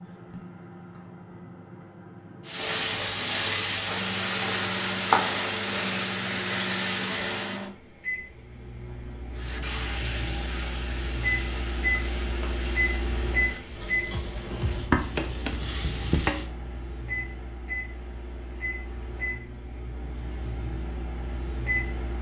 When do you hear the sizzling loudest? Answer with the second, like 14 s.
5 s.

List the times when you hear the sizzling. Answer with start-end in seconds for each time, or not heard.
2.5-7.7, 9.3-16.5.